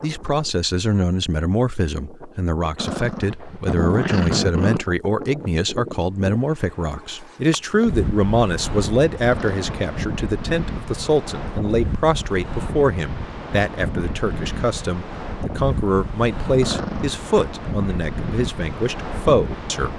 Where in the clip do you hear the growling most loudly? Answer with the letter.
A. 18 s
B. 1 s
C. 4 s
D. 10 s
C.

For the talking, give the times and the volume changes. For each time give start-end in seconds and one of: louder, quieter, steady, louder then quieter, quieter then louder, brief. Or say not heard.
0.0-19.9 steady.